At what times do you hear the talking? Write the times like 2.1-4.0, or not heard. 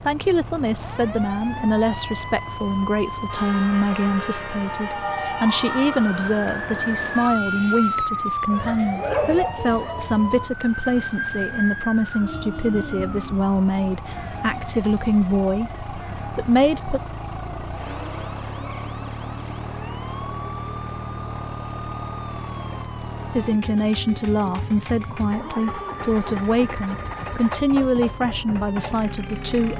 0.1-17.0, 23.4-29.7.